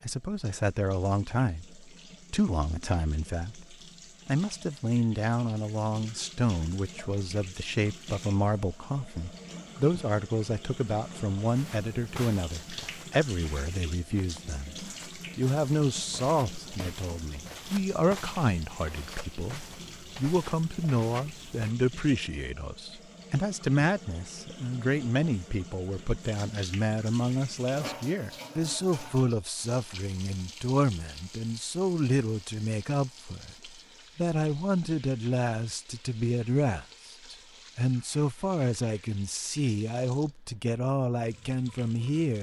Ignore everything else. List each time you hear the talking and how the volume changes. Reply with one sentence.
You can hear the talking from 0.0 to 42.3 s, at a steady volume.